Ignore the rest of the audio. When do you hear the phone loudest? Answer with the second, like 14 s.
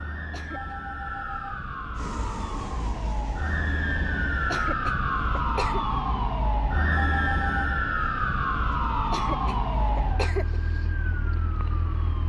7 s.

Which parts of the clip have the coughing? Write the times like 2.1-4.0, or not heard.
0.1-0.8, 4.3-5.8, 8.9-10.6.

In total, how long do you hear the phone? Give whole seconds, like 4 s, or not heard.
2 s.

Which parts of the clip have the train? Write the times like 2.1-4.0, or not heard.
1.9-4.5.